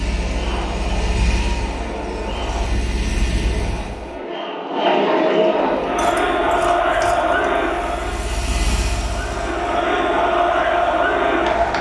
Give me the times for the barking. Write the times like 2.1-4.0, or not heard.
not heard.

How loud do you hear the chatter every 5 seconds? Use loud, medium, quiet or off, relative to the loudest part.
medium, loud, loud.